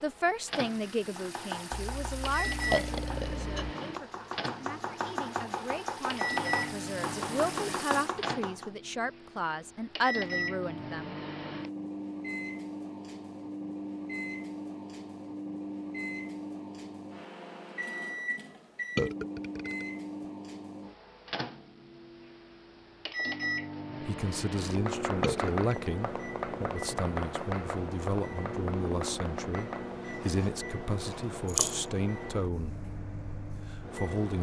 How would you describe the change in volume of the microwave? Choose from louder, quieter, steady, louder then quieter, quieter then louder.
steady.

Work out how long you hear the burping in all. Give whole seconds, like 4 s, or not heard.
4 s.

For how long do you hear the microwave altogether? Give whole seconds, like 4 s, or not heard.
34 s.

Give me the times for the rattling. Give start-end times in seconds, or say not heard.
31.4-31.9.